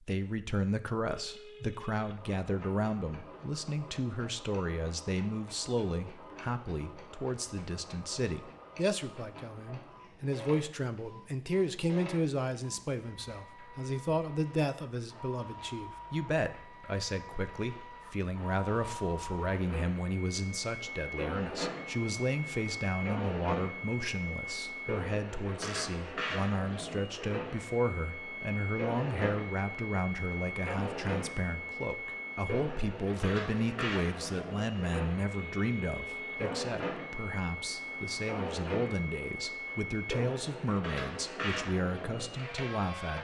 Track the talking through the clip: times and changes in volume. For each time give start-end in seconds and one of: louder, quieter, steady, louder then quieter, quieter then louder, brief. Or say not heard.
0.0-43.1 steady.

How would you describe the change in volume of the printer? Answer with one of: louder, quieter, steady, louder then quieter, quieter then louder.
louder.